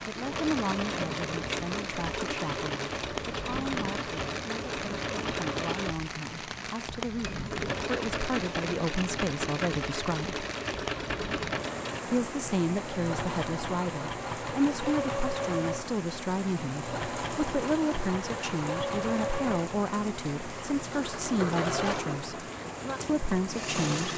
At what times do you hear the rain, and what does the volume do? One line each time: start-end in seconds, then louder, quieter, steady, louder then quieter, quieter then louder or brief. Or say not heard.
0.0-24.1 steady.